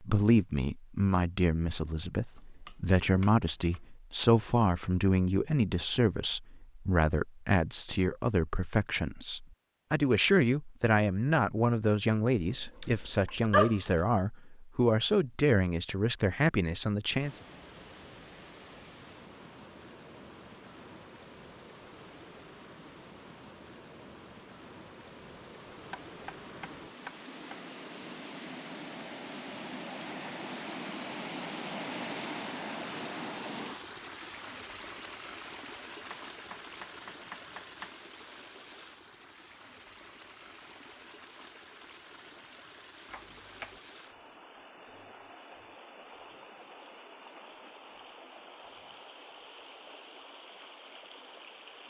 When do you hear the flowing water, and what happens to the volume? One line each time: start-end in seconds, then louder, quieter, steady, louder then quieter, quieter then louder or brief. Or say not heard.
17.1-51.8 louder then quieter.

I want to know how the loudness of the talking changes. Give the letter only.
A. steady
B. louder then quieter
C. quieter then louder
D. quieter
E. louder
A.